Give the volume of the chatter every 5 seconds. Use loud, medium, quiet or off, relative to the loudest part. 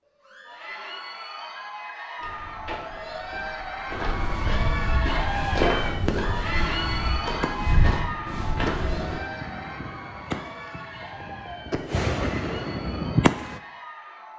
loud, loud, medium.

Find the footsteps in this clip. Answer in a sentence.
You can hear the footsteps from 2.1 to 9.2 s.